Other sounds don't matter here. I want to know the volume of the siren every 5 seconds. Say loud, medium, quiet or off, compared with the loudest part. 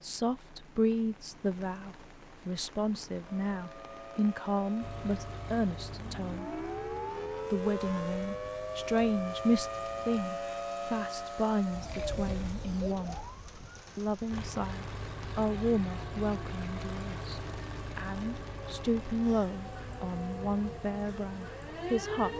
medium, loud, loud, medium, loud.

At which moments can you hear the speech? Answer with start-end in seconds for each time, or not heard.
0.0-6.5, 7.5-13.2, 13.9-22.3.